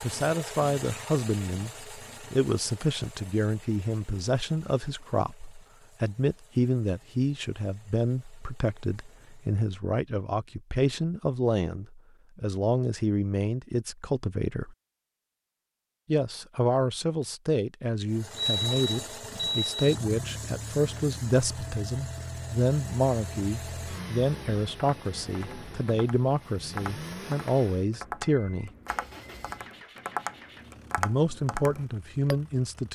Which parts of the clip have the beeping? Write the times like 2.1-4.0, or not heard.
18.4-19.9.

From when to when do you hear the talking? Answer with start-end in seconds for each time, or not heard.
0.0-14.8, 16.1-28.7, 30.9-32.9.